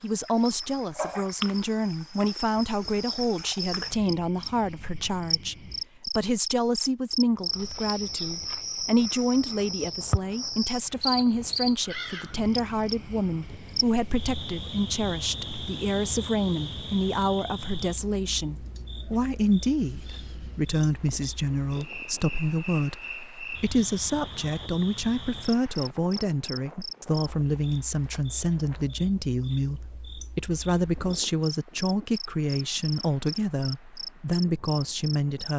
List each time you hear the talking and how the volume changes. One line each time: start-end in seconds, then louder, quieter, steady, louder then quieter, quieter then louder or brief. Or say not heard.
0.0-35.5 steady.